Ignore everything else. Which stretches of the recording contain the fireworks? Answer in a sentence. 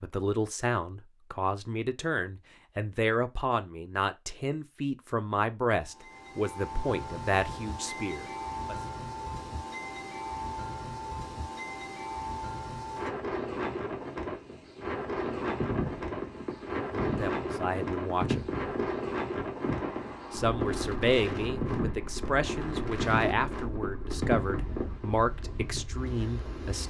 You can hear the fireworks from 15.1 to 25.1 s.